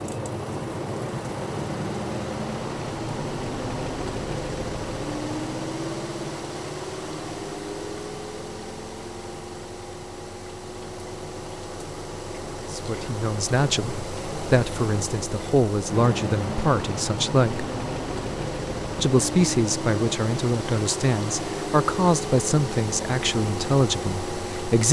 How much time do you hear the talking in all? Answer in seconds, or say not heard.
11 s.